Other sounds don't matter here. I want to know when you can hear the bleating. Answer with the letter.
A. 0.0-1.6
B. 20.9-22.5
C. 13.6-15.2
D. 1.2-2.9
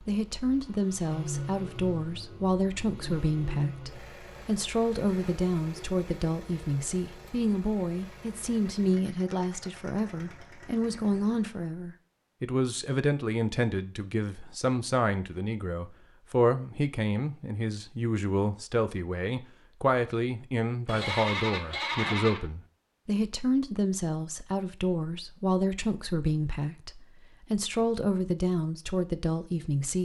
B.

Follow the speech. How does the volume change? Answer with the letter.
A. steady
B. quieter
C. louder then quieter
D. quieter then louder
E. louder
A.